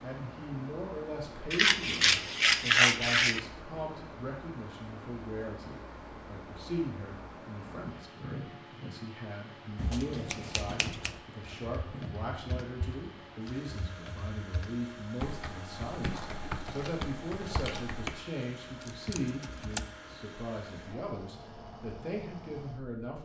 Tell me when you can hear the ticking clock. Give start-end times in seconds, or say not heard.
not heard.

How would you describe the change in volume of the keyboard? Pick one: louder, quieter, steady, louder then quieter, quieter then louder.
louder.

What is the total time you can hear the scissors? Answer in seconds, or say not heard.
5 s.